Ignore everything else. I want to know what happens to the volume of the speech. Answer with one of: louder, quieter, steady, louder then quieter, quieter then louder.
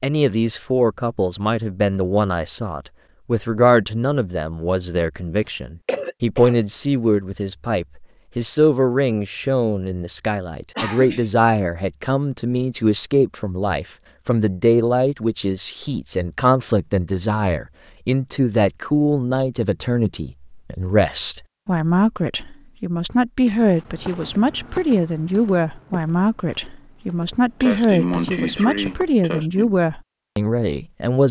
steady.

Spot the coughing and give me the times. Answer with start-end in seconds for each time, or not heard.
5.8-6.6, 10.8-11.4, 27.6-29.8.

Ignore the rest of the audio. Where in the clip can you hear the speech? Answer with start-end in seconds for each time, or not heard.
0.0-31.2.